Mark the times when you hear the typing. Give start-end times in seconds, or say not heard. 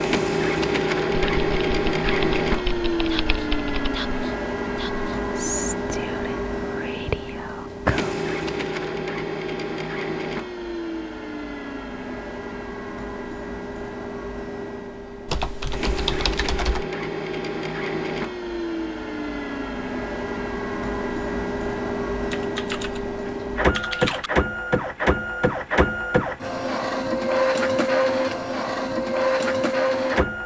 1.1-4.0, 15.2-16.9, 22.3-24.3.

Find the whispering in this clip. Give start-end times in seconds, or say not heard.
3.0-8.2.